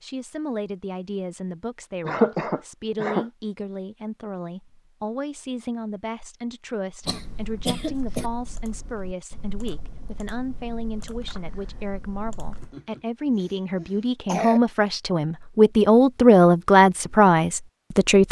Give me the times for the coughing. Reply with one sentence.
The coughing can be heard from 2.0 to 3.2 s, from 7.0 to 8.3 s and from 12.6 to 14.6 s.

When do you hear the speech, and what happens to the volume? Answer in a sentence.
The speech can be heard from 0.0 to 18.2 s, getting louder.